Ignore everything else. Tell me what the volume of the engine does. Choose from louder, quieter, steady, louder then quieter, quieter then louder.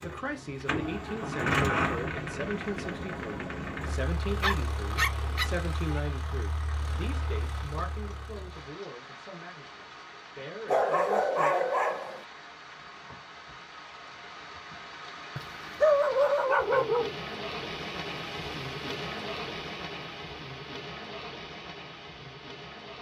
quieter.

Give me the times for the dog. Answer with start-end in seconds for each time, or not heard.
4.3-6.0, 10.7-12.2, 15.3-17.4.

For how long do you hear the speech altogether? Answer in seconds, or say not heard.
12 s.